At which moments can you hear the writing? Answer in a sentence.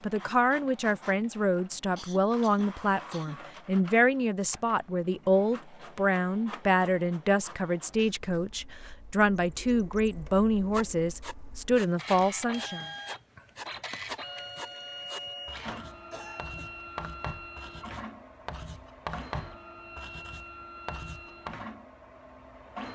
The writing can be heard from 10.7 to 21.6 s.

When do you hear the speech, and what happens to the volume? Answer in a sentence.
The speech can be heard from 0.0 to 12.8 s, at a steady volume.